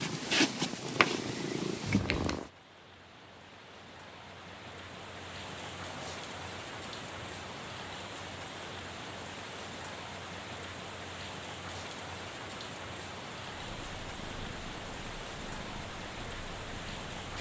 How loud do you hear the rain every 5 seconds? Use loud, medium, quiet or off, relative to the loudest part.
medium, loud, loud, loud.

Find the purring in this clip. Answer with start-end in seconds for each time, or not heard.
0.0-2.5, 13.6-17.3.